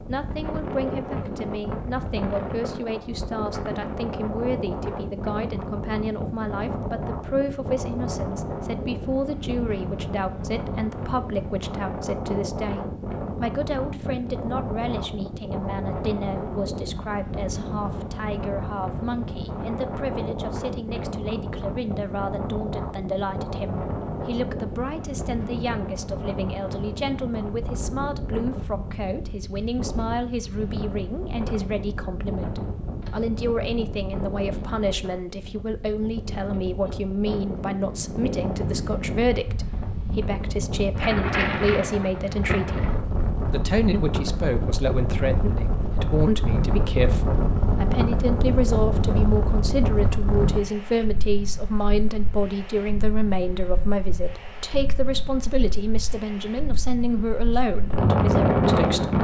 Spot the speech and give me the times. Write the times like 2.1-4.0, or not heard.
0.1-59.2.